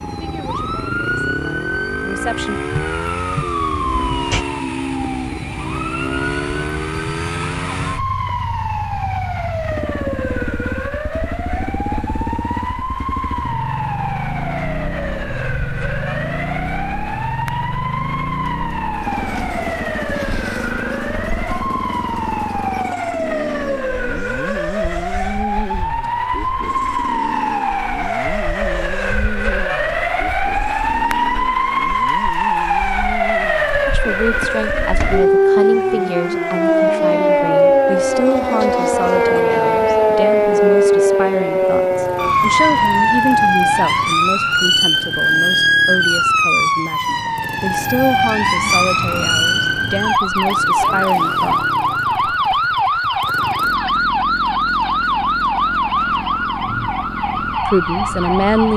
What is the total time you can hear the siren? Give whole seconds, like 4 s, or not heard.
59 s.